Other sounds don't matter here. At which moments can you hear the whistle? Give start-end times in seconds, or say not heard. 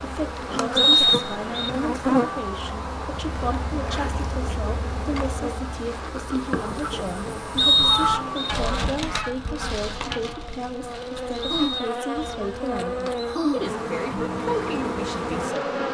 0.8-1.7, 7.5-8.6, 11.4-12.2.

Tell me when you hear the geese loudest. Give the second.
8 s.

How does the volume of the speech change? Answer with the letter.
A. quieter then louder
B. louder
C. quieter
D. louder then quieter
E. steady
E.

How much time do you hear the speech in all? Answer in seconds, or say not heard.
16 s.